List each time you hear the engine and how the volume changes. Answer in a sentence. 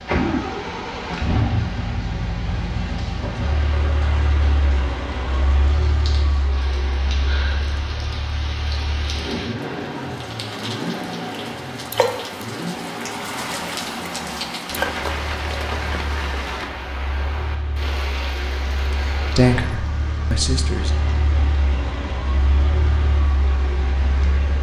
The engine can be heard from 0.0 to 24.5 s, getting quieter then louder.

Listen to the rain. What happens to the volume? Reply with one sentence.
The volume of the rain goes up, then down.